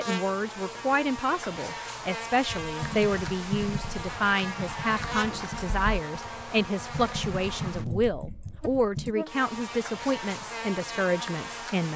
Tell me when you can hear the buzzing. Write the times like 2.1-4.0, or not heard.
0.0-11.9.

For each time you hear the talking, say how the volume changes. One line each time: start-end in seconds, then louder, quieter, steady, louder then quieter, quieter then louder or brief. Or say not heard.
0.0-11.9 steady.